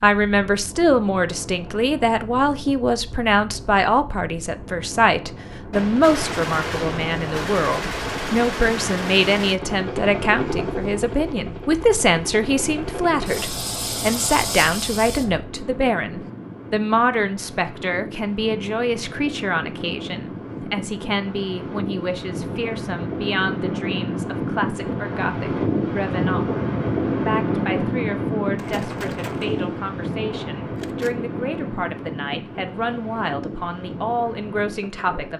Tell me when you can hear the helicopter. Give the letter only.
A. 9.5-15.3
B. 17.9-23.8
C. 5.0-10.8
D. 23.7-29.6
A.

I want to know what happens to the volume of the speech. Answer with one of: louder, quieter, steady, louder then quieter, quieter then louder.
quieter.